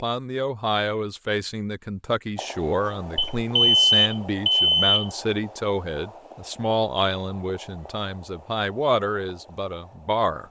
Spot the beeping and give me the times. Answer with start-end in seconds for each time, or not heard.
3.1-5.0.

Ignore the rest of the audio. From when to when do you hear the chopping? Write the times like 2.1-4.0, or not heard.
not heard.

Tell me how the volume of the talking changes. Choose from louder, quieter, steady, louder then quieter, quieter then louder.
steady.